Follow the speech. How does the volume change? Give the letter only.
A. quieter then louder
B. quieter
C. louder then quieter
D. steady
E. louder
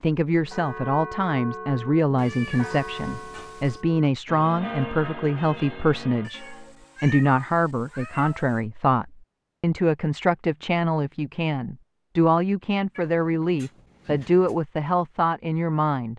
D.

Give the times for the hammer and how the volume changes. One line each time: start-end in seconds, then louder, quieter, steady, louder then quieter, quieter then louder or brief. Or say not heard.
not heard.